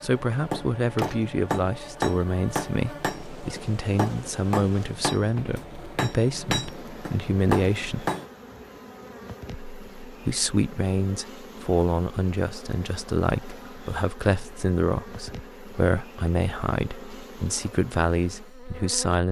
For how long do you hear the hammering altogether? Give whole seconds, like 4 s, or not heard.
8 s.